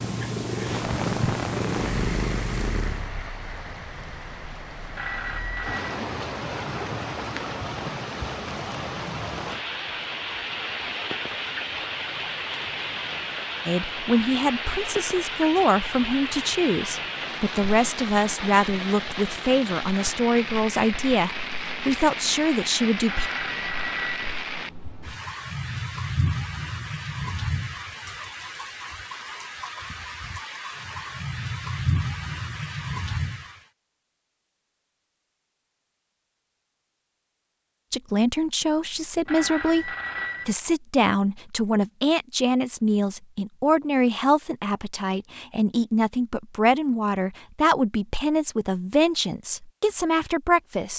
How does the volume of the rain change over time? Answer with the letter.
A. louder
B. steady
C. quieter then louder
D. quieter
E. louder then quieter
B.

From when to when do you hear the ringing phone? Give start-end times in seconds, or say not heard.
5.0-6.0, 23.1-24.4, 39.2-40.5.